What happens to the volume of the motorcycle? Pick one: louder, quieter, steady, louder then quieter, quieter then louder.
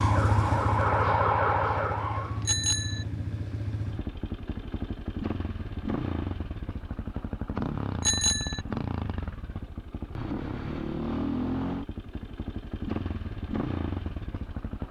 steady.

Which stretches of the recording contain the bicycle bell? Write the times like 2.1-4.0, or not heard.
2.5-3.0, 8.0-8.6.